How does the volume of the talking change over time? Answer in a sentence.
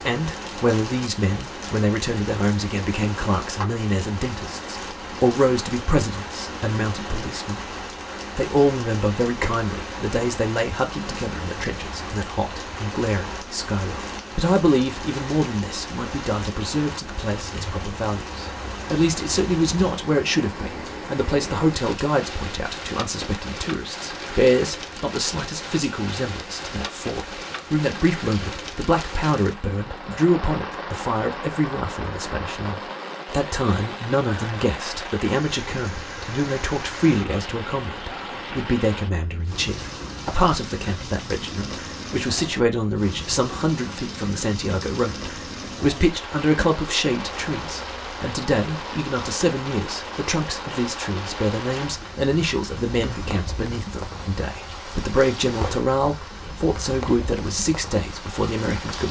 The loudness of the talking stays about the same.